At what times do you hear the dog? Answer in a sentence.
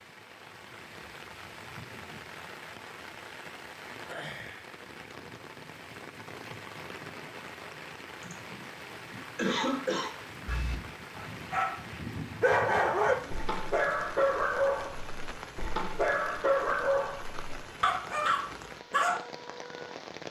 The dog can be heard from 10.4 to 19.2 s.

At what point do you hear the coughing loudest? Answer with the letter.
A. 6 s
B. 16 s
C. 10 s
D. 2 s
C.